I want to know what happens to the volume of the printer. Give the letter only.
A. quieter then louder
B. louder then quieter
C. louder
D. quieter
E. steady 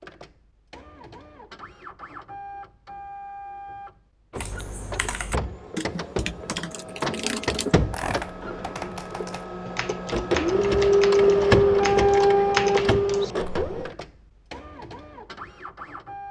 B.